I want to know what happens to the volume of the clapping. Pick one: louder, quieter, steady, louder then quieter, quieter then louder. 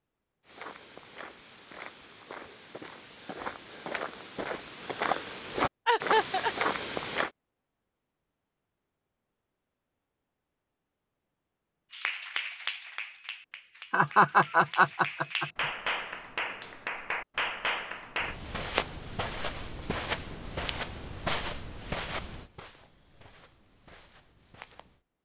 quieter then louder.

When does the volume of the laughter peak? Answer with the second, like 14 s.
14 s.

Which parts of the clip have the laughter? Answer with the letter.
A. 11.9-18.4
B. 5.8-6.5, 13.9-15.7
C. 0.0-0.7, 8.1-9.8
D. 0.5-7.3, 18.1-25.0
B.